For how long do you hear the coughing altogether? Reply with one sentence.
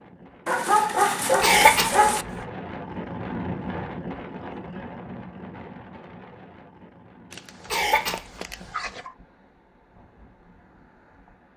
You can hear the coughing for 2 seconds altogether.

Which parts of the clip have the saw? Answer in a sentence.
The saw can't be heard in this clip.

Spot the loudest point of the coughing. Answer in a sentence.
The loudest moment of the coughing is at 2 seconds.